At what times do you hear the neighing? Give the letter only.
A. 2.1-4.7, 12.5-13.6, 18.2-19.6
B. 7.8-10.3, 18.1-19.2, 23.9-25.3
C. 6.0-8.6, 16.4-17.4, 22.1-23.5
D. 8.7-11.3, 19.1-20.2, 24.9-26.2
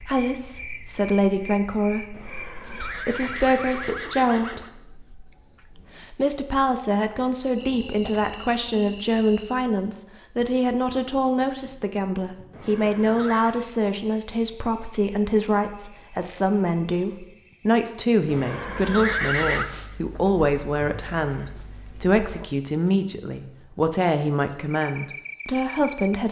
A.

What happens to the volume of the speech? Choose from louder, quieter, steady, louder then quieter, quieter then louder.
steady.